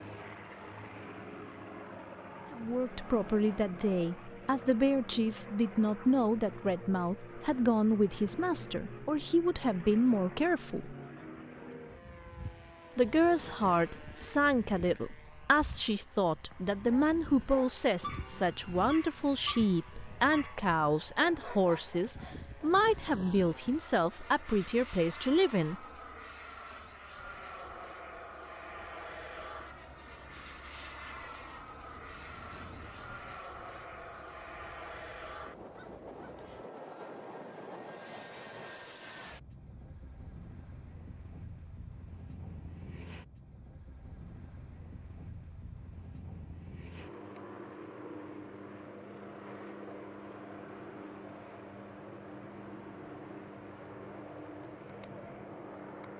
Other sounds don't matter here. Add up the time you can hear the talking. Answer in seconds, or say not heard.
21 s.